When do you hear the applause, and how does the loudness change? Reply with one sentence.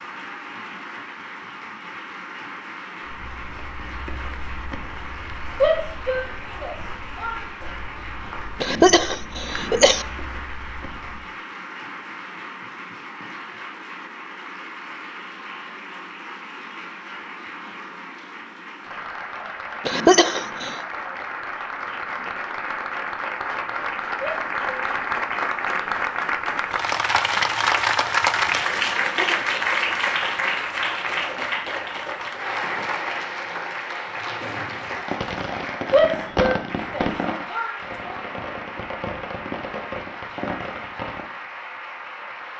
The applause can be heard from 0.0 to 42.5 s, getting louder then quieter.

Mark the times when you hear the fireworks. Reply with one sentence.
You can hear the fireworks from 34.4 to 41.2 s.